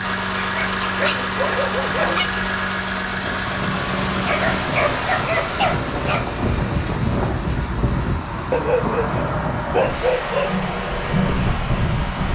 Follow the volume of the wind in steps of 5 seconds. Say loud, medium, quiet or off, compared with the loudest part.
medium, loud, loud.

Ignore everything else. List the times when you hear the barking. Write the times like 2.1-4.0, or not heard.
0.4-2.3, 4.2-6.2, 8.5-10.6.